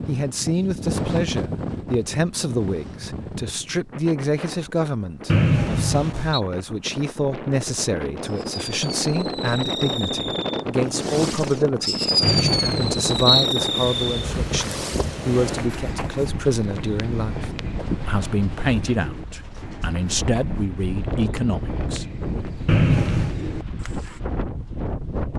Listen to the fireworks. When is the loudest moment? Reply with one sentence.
The loudest moment of the fireworks is at 12 seconds.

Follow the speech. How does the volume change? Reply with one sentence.
The loudness of the speech stays about the same.